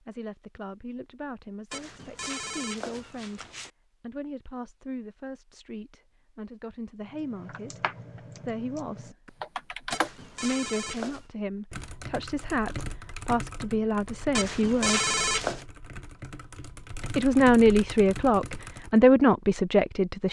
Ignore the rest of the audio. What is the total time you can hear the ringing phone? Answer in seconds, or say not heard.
5 s.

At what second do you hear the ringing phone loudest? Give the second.
15 s.